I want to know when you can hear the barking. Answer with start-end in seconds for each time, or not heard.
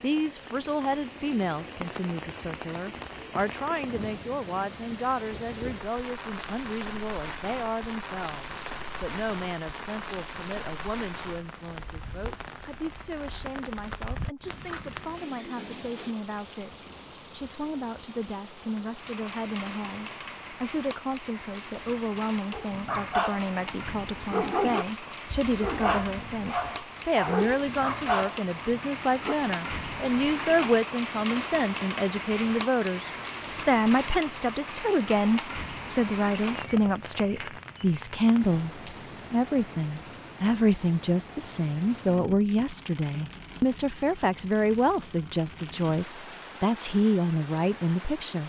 22.5-29.4.